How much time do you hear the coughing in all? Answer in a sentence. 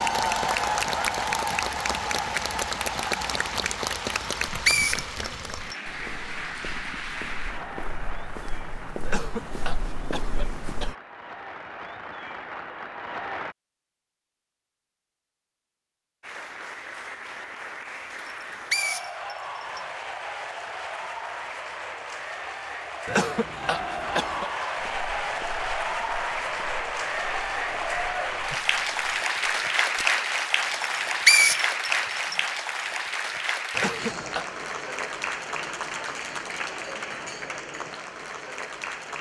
You can hear the coughing for 4 seconds altogether.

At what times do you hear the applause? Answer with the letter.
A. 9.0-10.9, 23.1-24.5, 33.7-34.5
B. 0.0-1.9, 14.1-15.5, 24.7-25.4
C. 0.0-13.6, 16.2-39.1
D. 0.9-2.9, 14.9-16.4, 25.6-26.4
C.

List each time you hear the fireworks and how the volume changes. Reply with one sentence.
You can't hear the fireworks here.